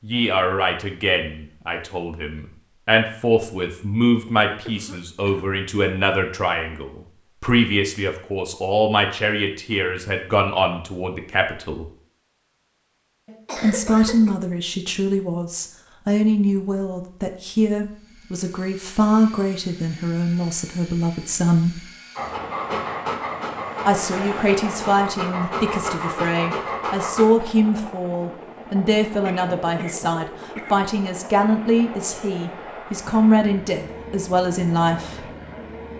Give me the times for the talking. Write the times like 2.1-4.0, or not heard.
0.0-11.8, 13.6-21.9, 23.9-35.3.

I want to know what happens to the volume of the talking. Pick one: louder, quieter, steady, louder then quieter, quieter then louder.
steady.